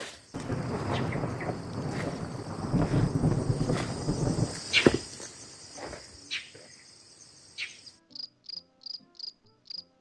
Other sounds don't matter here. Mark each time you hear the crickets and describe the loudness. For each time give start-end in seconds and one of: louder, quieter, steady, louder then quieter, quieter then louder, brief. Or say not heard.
0.0-9.9 louder then quieter.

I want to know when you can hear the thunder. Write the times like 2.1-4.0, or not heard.
0.3-4.6.